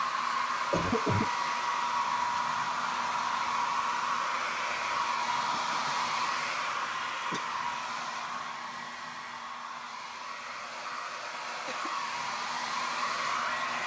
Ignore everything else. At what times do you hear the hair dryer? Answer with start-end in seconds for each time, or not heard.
0.0-13.8.